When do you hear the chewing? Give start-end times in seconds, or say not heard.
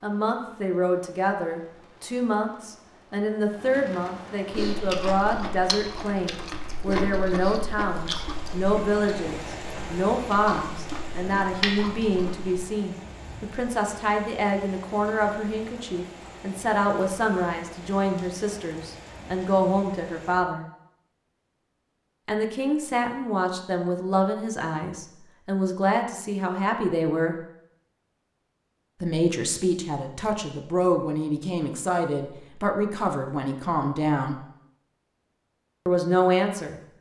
4.5-12.6.